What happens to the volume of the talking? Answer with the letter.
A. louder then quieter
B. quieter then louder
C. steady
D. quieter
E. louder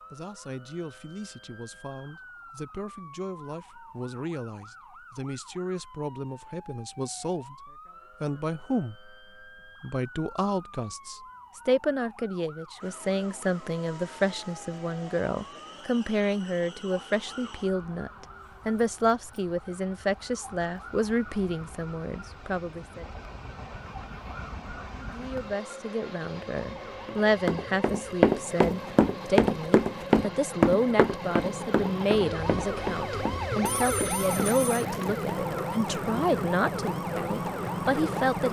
E.